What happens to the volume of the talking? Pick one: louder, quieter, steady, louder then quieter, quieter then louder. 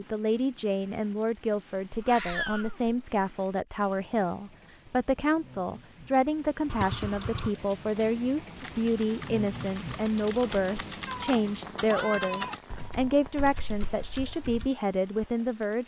steady.